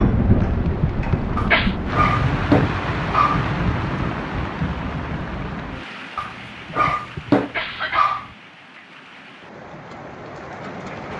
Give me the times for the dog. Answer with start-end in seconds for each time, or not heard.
1.4-3.5, 6.2-8.3.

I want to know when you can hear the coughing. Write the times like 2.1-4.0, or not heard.
0.6-1.8, 6.7-8.2.